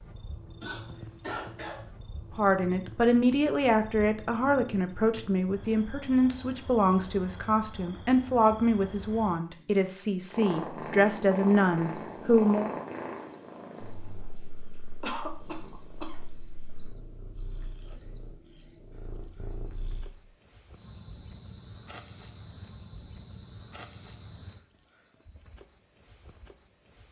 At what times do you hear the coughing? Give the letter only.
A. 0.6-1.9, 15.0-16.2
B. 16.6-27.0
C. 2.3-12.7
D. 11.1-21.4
A.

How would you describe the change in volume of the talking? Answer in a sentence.
The volume of the talking stays about the same.